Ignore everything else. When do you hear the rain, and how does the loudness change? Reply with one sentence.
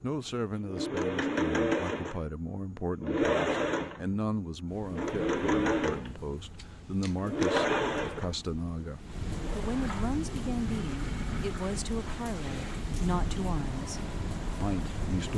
The rain can be heard from 4.7 to 15.3 s, getting louder.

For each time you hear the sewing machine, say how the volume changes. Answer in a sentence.
The sewing machine can be heard from 0.0 to 15.3 s, getting quieter.